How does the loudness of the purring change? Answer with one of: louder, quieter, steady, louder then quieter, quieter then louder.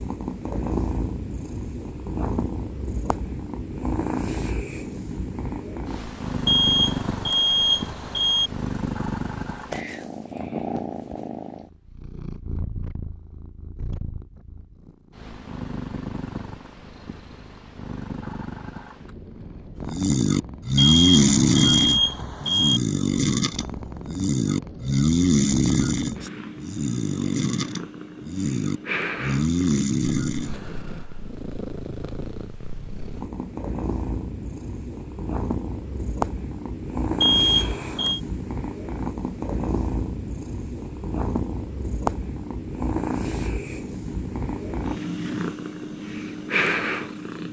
quieter then louder.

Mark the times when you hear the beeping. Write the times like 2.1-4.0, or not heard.
6.5-8.5, 20.8-22.8, 37.2-38.2.